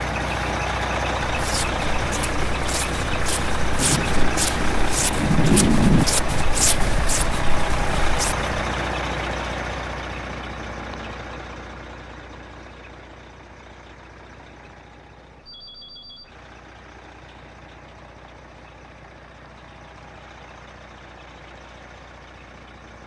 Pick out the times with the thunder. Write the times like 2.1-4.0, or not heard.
3.8-6.0.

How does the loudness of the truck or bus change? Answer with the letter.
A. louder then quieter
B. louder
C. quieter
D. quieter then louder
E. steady
C.